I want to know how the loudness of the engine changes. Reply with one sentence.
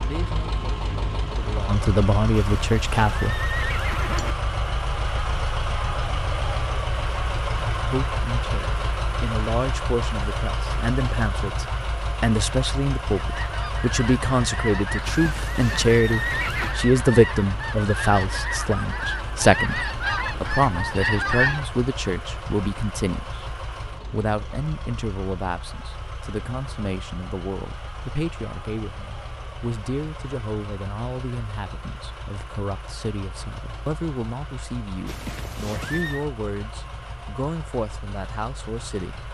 The volume of the engine goes down.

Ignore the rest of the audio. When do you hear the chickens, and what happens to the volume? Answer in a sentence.
The chickens can be heard from 13.2 to 21.7 s, getting louder.